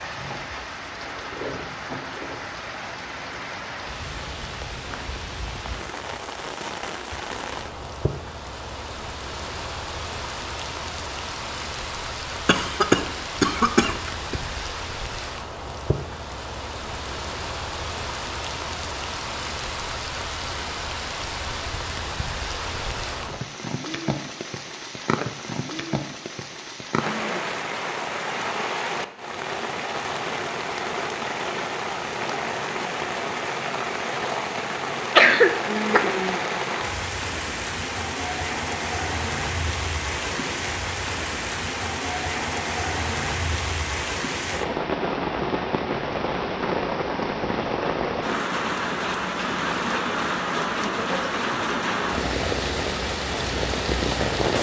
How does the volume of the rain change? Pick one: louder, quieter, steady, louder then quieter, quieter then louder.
louder.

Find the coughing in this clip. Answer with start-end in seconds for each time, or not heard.
12.4-14.3, 35.1-36.4.